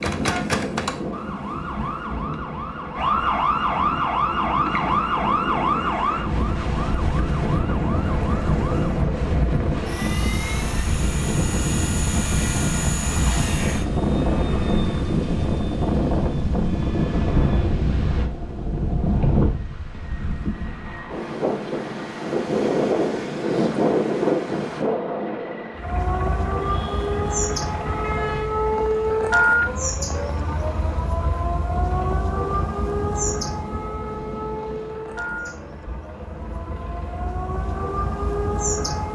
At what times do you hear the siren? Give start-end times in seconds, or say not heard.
0.0-9.1, 25.8-39.0.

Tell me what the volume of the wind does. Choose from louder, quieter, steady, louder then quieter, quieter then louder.
louder.